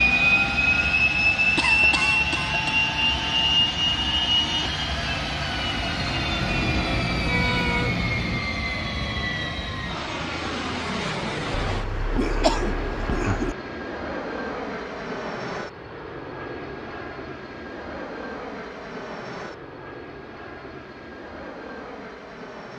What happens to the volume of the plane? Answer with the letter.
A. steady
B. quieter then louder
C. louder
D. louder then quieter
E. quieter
E.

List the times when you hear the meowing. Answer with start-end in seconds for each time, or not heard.
6.4-8.4.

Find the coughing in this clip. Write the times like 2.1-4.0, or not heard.
1.6-2.9, 11.7-13.6.